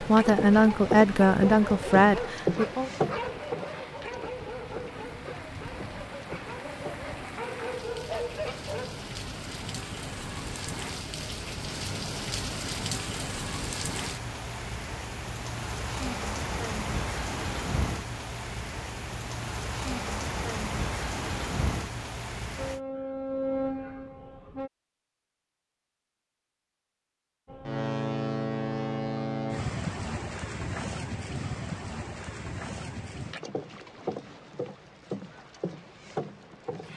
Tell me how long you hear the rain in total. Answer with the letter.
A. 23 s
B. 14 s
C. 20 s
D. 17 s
A.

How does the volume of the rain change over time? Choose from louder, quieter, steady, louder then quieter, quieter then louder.
louder.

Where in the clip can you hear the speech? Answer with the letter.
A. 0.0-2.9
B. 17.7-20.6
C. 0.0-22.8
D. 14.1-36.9
A.